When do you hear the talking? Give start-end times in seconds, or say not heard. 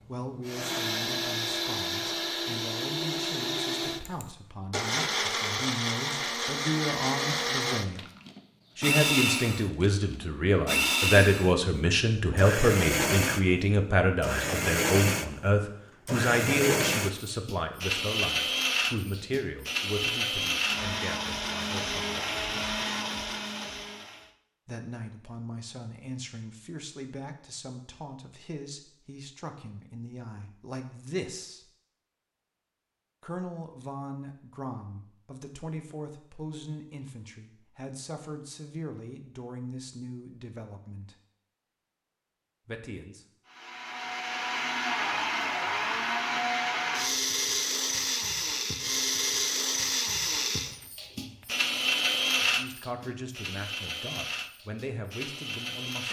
0.1-8.1, 8.8-22.2, 24.6-31.7, 33.2-41.1, 42.6-43.2, 52.4-56.0.